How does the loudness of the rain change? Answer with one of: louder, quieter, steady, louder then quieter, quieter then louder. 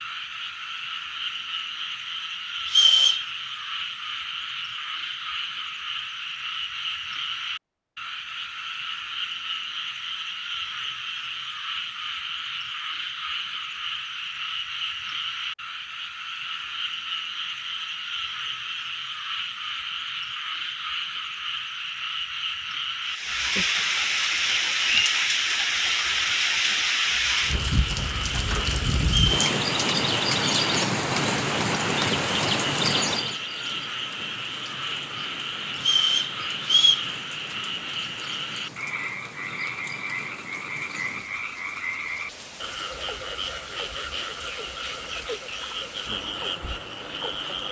quieter.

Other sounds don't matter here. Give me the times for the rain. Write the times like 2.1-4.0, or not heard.
23.1-47.6.